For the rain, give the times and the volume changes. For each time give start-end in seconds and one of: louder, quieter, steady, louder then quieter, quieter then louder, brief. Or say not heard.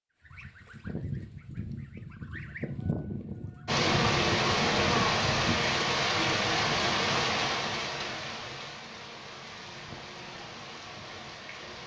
3.6-11.8 quieter.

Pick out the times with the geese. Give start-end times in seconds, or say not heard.
0.2-5.7.